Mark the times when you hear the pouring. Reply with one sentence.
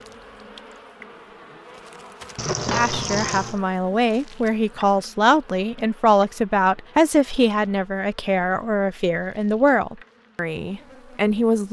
The pouring can be heard from 2.4 to 3.6 s.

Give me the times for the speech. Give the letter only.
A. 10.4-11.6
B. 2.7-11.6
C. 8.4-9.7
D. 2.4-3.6
B.